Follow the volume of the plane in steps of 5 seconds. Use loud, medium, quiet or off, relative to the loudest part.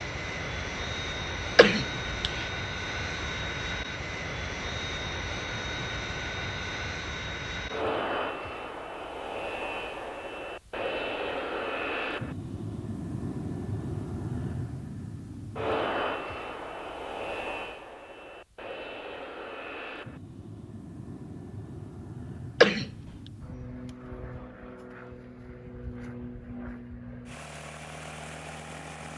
loud, loud, loud, loud, medium, medium.